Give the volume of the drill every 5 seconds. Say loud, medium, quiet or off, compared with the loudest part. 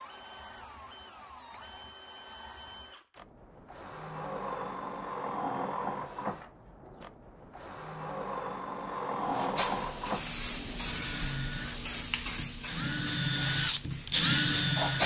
quiet, medium, loud.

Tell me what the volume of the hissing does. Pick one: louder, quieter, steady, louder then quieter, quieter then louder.
quieter.